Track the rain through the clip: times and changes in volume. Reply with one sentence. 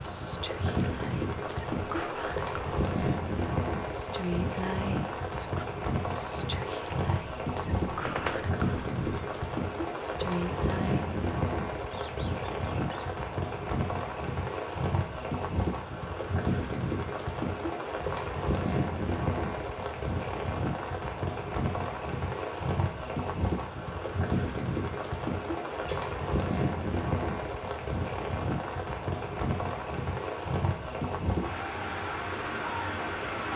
You can hear the rain from 0.0 to 33.5 s, at a steady volume.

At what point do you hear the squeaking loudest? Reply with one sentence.
The volume of the squeaking peaks at 8 seconds.